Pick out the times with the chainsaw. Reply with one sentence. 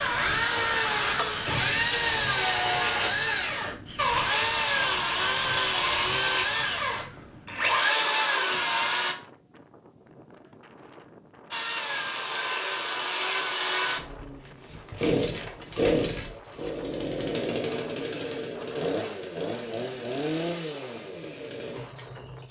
You can hear the chainsaw from 0.0 to 9.2 s and from 11.5 to 22.4 s.